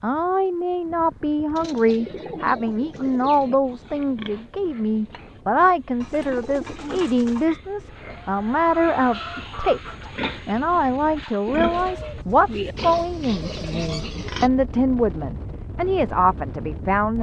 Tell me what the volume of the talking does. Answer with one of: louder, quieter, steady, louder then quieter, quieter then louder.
steady.